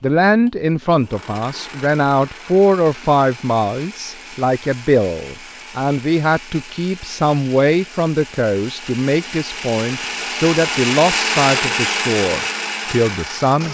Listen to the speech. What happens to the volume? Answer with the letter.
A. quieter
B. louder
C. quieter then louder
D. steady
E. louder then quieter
D.